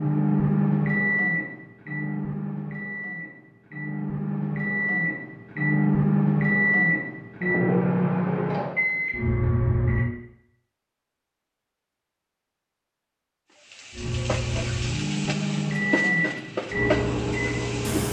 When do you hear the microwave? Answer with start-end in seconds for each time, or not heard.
0.0-10.1, 13.9-18.0.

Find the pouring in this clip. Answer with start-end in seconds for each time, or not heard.
not heard.